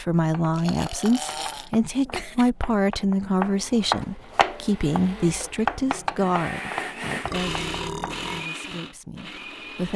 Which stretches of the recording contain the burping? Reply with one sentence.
You can hear the burping from 0.5 to 2.5 s and from 7.2 to 8.4 s.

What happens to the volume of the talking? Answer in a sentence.
The volume of the talking goes down.